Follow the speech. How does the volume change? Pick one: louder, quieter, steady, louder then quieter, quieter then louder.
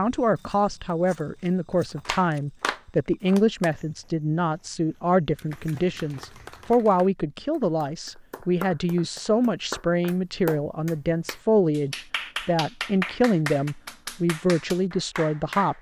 steady.